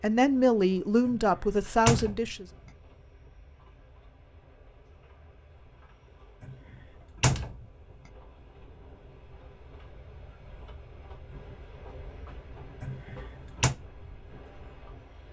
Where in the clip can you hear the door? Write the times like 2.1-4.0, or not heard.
1.1-2.2, 6.4-7.5, 12.8-13.8.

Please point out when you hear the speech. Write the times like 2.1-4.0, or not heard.
0.0-2.5.